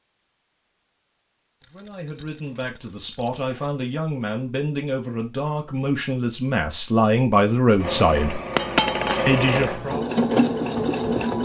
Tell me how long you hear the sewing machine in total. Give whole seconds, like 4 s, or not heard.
4 s.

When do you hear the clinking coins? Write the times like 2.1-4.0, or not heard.
1.6-3.8, 8.6-9.3.